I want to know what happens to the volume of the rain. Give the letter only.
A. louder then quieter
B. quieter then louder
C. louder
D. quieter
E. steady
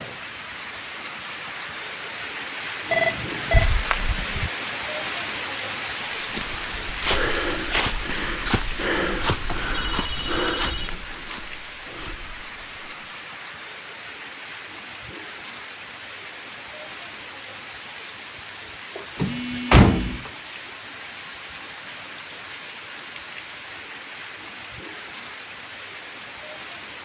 D.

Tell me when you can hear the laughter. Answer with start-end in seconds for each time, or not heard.
not heard.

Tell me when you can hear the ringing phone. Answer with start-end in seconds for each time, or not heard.
2.9-3.7, 9.1-11.0, 19.2-20.2.